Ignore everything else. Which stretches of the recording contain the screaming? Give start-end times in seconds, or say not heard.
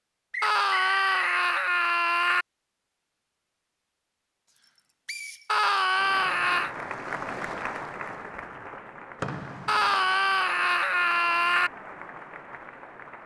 0.4-2.5, 5.5-6.8, 9.7-11.7.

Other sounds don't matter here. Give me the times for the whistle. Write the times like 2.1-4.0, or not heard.
0.3-1.3, 5.0-5.5, 9.2-10.0.